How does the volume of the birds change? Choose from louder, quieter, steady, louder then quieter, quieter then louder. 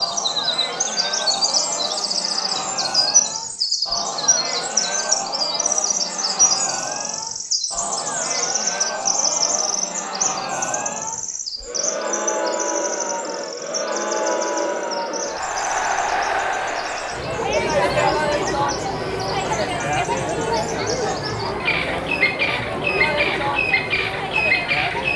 quieter then louder.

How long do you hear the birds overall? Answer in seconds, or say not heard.
25 s.